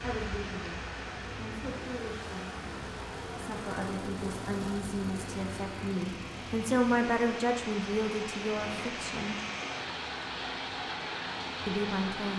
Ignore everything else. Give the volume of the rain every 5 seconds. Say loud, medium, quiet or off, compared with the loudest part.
medium, loud, loud.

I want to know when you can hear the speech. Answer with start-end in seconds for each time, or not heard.
0.0-9.4, 11.7-12.3.